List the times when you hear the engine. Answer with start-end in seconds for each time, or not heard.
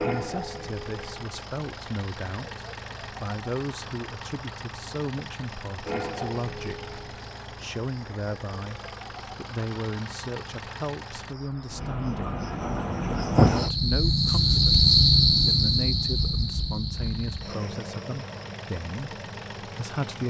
0.0-11.3, 16.9-20.2.